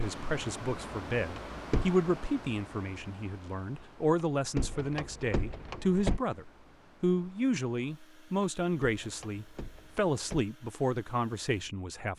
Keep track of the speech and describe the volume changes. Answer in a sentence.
The loudness of the speech stays about the same.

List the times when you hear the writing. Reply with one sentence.
You can't hear the writing here.